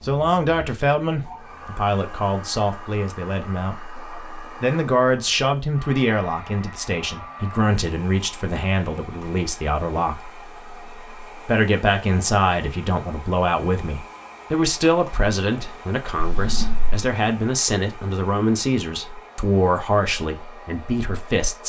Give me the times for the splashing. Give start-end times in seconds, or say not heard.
not heard.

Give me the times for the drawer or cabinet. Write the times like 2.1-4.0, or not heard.
16.1-17.0.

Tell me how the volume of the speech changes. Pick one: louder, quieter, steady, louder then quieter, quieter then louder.
steady.